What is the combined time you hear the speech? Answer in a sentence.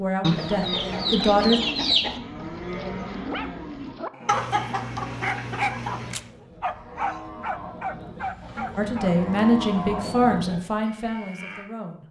The speech can be heard for 5 seconds in total.